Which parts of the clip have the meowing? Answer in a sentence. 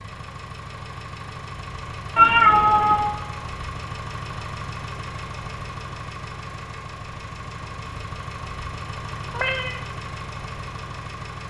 The meowing can be heard from 2.1 to 3.2 s and from 9.3 to 9.8 s.